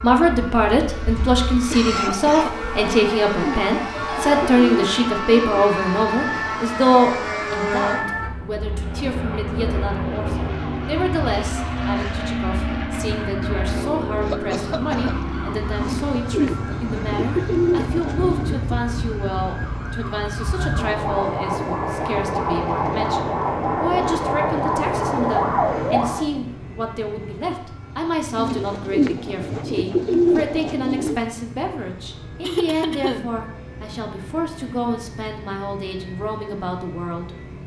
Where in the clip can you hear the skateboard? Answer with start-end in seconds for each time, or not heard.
not heard.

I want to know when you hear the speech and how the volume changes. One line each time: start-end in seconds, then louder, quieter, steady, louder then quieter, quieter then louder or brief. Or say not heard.
0.0-37.3 quieter.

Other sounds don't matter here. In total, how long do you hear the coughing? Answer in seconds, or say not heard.
4 s.